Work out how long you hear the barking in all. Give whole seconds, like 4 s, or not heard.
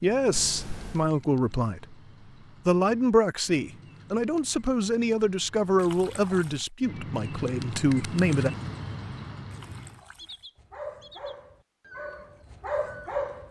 3 s.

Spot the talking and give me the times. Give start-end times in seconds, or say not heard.
0.0-1.9, 2.6-8.5.